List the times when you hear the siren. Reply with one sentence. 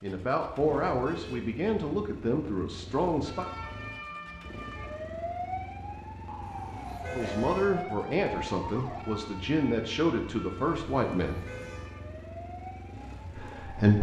The siren can be heard from 3.2 to 13.8 s.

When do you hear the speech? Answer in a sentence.
You can hear the speech from 0.0 to 3.5 s, from 7.1 to 11.4 s and from 13.3 to 13.9 s.